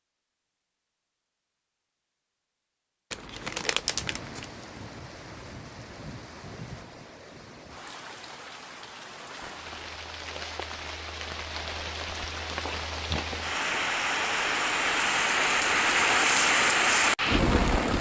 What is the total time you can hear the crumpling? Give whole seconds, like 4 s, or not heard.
2 s.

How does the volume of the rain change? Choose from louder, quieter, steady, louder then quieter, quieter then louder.
louder.